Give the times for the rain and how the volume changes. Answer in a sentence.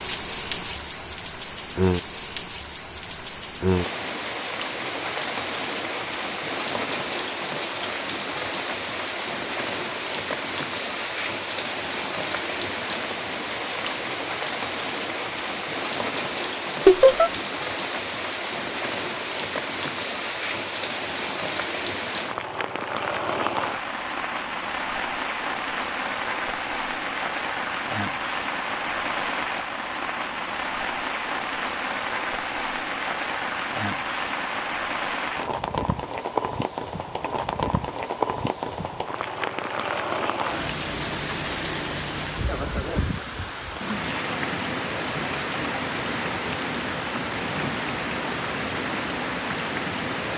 You can hear the rain from 0.0 to 50.3 s, at a steady volume.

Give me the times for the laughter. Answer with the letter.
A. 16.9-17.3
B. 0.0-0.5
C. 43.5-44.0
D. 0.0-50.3
A.